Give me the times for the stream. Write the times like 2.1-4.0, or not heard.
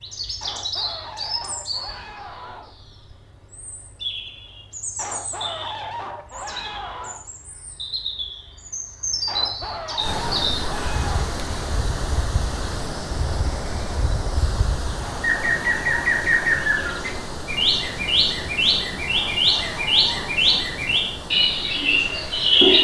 9.9-22.7.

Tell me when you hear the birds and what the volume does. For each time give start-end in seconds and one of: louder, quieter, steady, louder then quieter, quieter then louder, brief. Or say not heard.
0.0-22.7 louder.